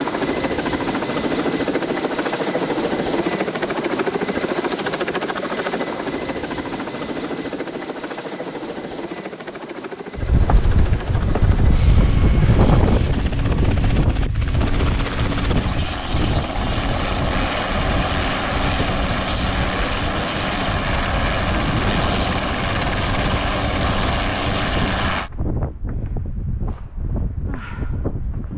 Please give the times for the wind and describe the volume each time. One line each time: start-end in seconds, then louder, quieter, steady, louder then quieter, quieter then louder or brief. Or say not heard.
10.2-28.5 quieter.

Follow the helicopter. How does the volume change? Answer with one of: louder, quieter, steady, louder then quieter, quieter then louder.
quieter then louder.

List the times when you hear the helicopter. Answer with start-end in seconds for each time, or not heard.
0.0-25.3.